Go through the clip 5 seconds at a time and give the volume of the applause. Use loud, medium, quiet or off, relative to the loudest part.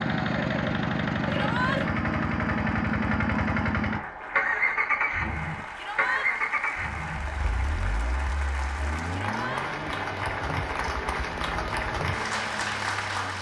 medium, medium, loud.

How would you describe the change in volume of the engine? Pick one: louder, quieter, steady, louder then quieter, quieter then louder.
quieter.